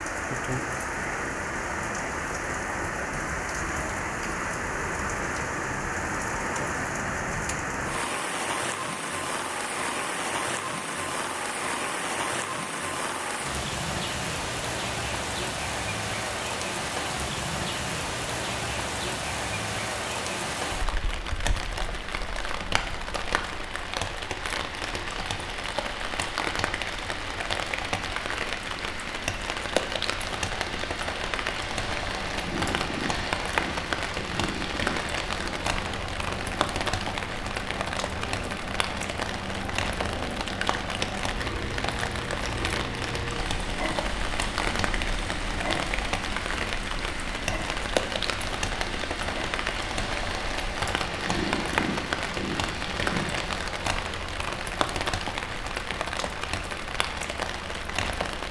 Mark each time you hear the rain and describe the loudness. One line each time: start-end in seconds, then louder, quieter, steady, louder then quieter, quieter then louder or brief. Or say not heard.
0.0-58.4 steady.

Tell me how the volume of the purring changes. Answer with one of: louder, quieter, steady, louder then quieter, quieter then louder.
steady.